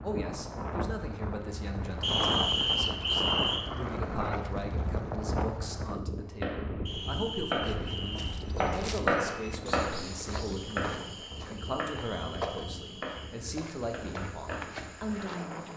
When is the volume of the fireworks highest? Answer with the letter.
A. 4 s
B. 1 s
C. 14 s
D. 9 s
D.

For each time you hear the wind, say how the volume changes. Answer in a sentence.
The wind can be heard from 0.0 to 15.7 s, getting quieter.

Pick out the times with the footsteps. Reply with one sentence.
You can hear the footsteps from 7.7 to 15.7 s.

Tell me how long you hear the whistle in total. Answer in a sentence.
The whistle can be heard for 6 seconds in total.